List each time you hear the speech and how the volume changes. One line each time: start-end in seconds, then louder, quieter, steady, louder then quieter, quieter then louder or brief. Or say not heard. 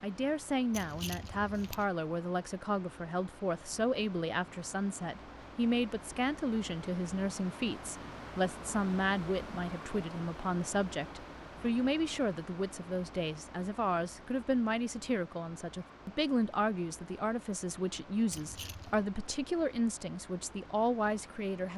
0.0-21.7 steady.